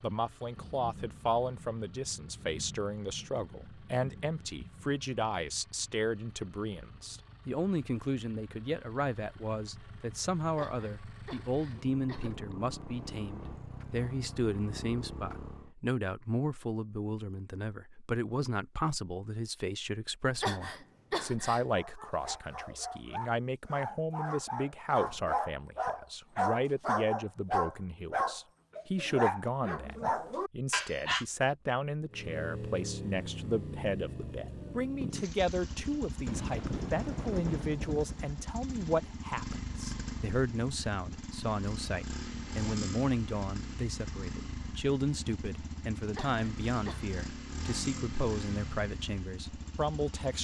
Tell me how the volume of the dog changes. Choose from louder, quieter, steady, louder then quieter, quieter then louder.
louder.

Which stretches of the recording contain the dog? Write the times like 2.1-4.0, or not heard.
21.7-31.2.